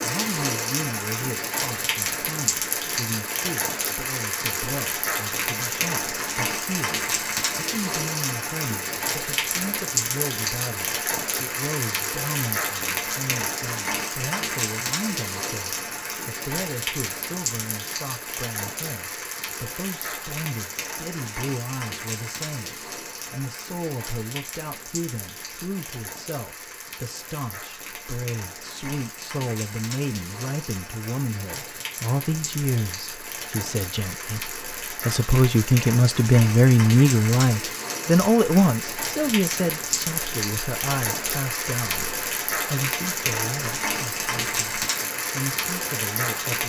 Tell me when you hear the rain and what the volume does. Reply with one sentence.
The rain can be heard from 0.0 to 46.6 s, getting quieter then louder.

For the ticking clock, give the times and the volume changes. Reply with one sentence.
The ticking clock can't be heard in this clip.